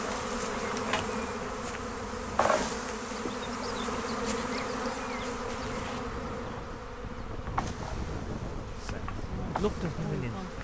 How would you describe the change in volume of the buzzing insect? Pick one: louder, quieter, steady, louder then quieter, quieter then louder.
quieter.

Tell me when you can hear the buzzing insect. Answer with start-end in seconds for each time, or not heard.
0.0-10.6.